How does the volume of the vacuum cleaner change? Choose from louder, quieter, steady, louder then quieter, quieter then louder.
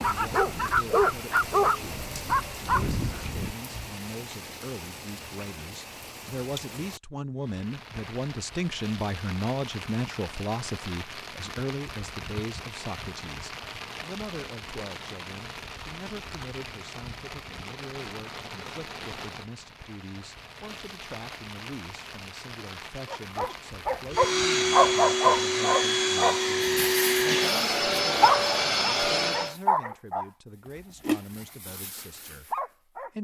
steady.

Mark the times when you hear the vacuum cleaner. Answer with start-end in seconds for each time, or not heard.
24.1-29.6.